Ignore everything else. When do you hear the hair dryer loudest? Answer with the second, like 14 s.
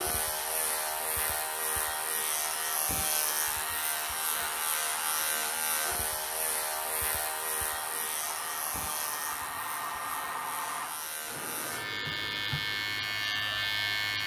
10 s.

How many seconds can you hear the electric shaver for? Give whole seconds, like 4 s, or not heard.
14 s.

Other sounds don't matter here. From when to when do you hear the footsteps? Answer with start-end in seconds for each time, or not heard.
not heard.